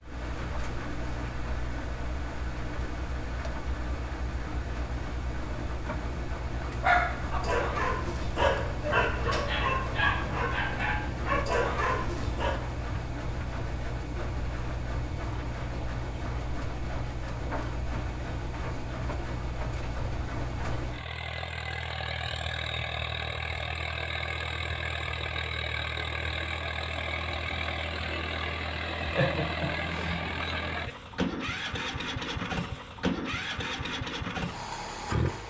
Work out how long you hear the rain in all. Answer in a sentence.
The rain can't be heard in this clip.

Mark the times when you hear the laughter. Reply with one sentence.
The laughter can be heard from 29.1 to 30.2 s.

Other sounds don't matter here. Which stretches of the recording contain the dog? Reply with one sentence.
You can hear the dog from 6.7 to 12.6 s.